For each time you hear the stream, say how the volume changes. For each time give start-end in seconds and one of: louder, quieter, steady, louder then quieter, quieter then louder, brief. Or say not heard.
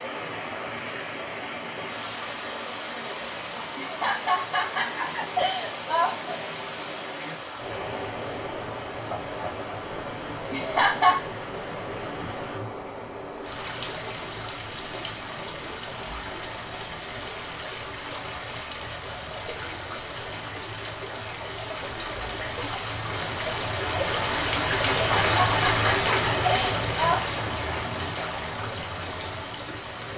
0.0-30.1 louder.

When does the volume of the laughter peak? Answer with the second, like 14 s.
11 s.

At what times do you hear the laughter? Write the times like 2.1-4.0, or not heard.
3.8-6.4, 10.5-11.2, 24.9-27.2.